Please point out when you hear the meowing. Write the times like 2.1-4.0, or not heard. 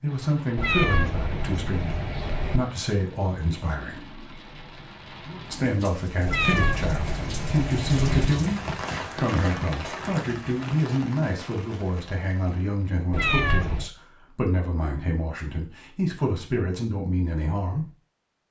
0.6-2.6, 6.2-8.3, 13.1-13.9.